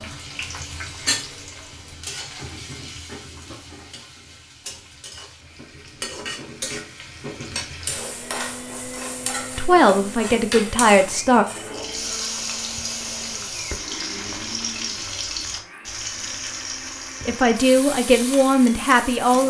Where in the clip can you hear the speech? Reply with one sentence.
The speech can be heard from 9.6 to 11.4 s and from 17.2 to 19.4 s.